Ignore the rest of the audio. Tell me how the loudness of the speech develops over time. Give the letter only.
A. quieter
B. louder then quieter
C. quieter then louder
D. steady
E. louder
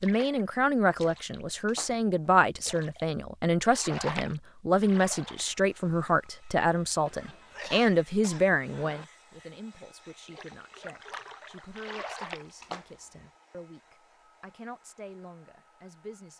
A.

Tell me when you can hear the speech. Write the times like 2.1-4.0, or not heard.
0.0-16.3.